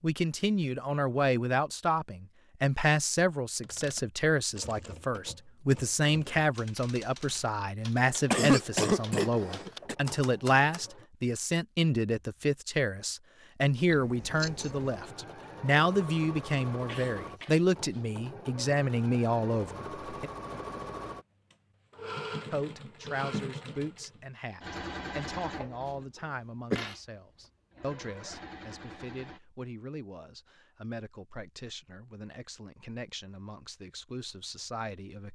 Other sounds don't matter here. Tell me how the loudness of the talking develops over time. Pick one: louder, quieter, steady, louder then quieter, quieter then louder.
quieter.